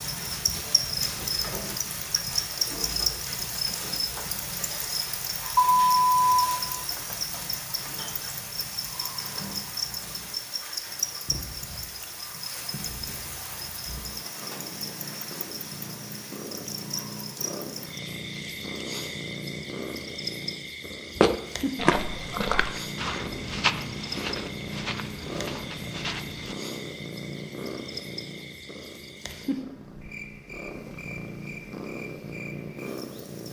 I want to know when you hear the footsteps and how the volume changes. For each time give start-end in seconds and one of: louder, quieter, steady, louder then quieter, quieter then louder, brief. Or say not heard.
21.1-26.6 quieter.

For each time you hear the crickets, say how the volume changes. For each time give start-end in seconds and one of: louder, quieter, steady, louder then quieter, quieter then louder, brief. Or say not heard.
0.0-33.4 quieter.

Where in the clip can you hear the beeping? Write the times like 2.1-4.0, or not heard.
5.5-6.5.